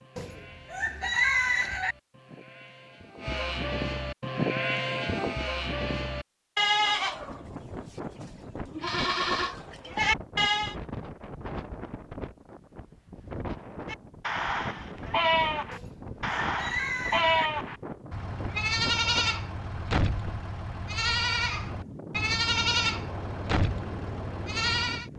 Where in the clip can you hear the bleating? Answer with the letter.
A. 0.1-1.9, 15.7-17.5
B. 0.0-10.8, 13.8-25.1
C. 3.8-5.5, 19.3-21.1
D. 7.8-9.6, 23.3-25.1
B.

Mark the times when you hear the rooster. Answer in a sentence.
The rooster can be heard from 0.1 to 1.9 s and from 15.7 to 17.5 s.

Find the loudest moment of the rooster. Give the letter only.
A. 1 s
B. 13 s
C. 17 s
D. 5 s
A.